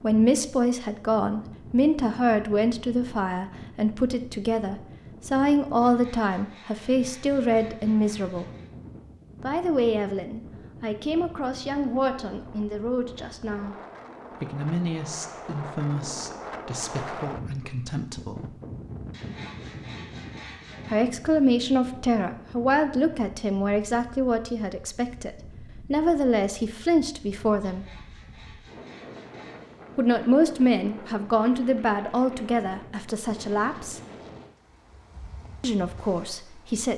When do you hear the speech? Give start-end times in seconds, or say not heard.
0.0-8.4, 9.4-13.8, 14.4-18.6, 20.9-27.9, 29.9-34.0, 35.6-36.9.